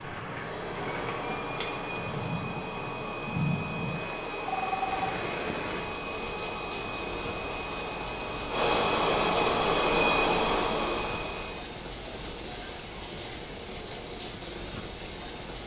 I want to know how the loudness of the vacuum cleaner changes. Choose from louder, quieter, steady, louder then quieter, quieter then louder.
louder.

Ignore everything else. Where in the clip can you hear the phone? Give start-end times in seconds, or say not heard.
4.5-5.1.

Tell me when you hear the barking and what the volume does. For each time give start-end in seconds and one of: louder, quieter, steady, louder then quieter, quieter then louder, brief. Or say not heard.
not heard.